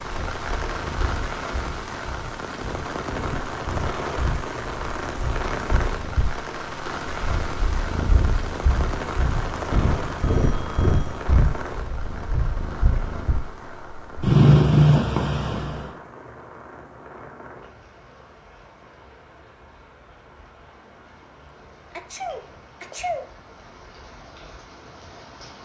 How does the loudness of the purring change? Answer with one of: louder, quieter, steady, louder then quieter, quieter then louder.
louder.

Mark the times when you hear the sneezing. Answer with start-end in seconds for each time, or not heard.
21.9-23.2.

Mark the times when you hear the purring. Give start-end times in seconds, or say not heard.
0.1-15.9.